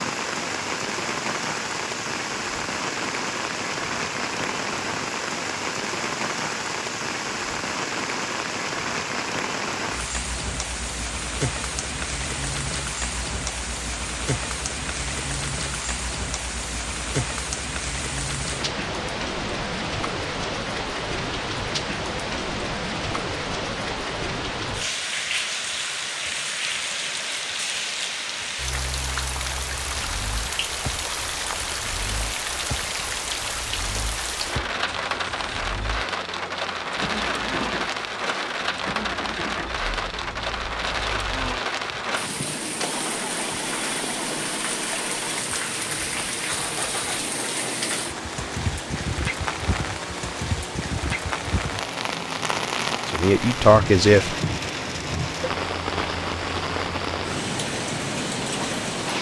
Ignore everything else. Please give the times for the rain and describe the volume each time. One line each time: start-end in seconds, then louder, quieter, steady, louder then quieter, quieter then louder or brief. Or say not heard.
0.0-59.1 steady.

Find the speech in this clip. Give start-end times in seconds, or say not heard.
53.0-54.4.